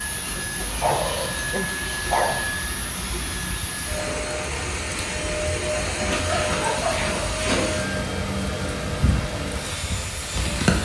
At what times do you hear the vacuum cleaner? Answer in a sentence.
The vacuum cleaner can be heard from 0.0 to 10.8 s.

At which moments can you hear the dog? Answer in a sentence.
You can hear the dog from 0.8 to 2.5 s and from 6.2 to 7.8 s.